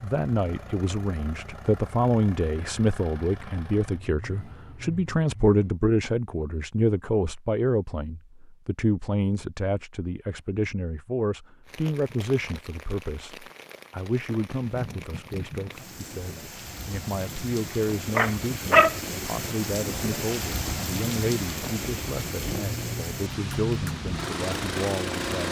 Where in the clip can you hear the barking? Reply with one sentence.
You can hear the barking from 18.1 to 18.9 s.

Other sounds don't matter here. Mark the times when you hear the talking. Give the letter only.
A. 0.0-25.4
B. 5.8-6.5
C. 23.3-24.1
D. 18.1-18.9
A.